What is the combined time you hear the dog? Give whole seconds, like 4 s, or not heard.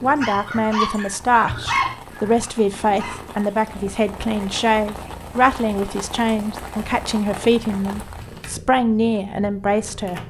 3 s.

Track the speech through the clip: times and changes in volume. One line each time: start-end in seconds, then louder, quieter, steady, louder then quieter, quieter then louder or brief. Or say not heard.
0.0-10.2 steady.